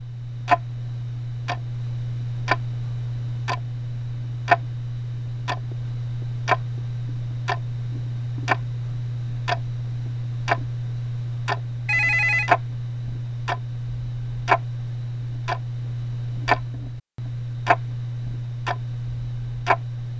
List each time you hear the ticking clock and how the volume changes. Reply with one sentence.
The ticking clock can be heard from 0.0 to 20.1 s, at a steady volume.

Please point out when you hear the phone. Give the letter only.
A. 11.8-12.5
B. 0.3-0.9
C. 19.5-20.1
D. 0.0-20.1
A.